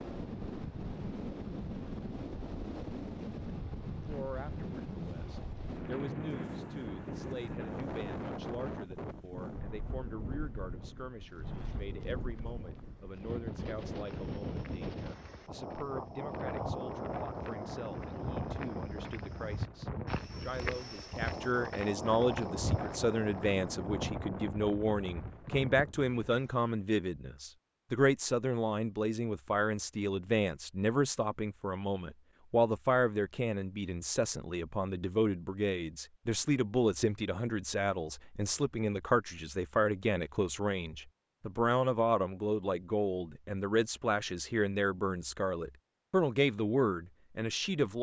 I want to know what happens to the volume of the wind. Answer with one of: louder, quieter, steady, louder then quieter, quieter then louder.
steady.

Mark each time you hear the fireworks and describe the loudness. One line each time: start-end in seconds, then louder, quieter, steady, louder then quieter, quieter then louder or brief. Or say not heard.
not heard.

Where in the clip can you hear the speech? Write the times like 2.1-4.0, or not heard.
4.0-47.9.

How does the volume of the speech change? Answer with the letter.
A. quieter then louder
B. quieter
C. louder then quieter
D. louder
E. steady
D.